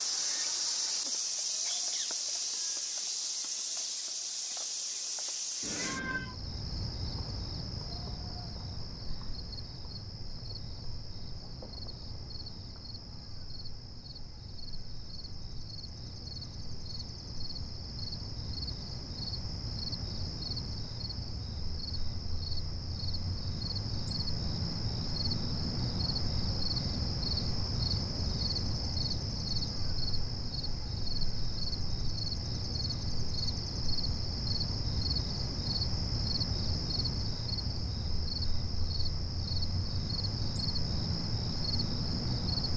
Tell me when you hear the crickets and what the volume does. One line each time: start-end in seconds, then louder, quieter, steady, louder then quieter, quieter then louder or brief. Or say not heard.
0.0-42.7 quieter then louder.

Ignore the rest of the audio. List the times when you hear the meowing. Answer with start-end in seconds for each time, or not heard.
5.6-6.3.